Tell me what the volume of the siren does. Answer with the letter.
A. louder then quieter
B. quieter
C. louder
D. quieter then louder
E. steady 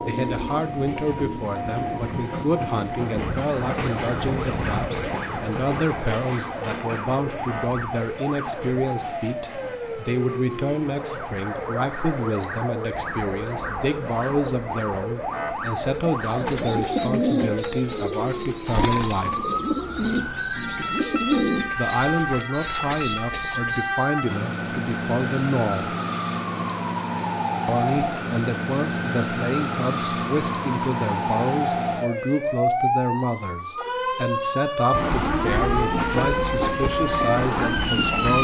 C.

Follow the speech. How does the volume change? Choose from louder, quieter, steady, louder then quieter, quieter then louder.
steady.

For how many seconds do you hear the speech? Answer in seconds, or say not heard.
34 s.